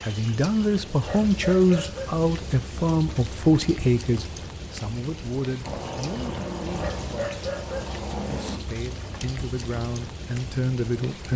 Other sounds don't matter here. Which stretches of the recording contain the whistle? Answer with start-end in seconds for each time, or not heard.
not heard.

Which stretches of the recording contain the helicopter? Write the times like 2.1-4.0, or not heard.
5.6-8.6.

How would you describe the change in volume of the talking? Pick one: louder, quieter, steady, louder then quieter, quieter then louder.
quieter then louder.